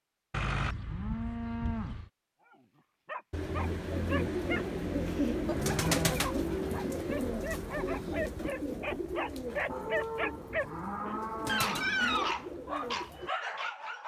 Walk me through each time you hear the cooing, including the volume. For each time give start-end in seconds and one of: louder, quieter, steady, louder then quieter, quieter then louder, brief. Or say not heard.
3.3-13.3 quieter.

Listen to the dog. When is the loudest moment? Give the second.
12 s.